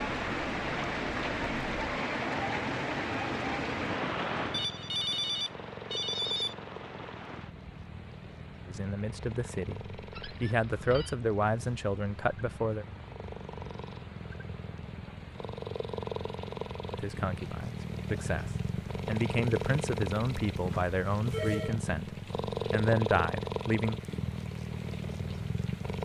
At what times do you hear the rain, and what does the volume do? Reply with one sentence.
You can hear the rain from 0.0 to 25.9 s, getting quieter.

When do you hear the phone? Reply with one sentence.
The phone can be heard from 4.5 to 6.5 s, from 10.1 to 11.2 s and from 20.6 to 21.8 s.